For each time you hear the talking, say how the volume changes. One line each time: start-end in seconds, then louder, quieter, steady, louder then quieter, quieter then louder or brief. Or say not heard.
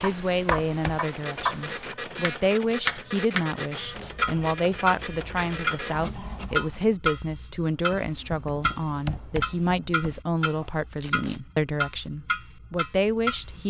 0.0-13.6 steady.